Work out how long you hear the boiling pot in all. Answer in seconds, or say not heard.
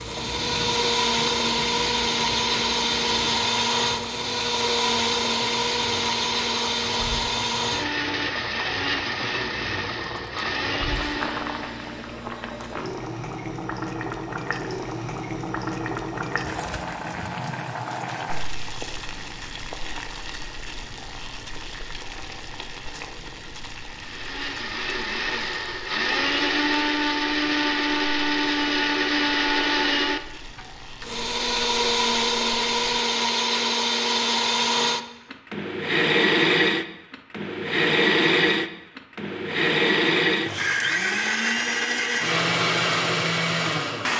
33 s.